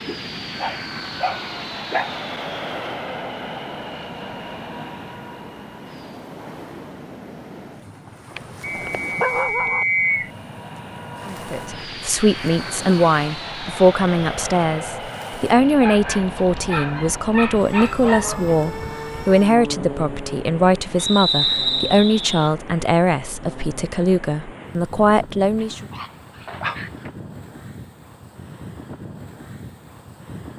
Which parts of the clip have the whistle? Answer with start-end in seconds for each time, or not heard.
8.6-10.3, 20.9-22.5.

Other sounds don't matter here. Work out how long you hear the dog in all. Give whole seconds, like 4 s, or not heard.
8 s.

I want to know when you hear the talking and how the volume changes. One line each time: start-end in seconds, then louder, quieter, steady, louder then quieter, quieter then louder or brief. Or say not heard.
11.2-25.8 steady.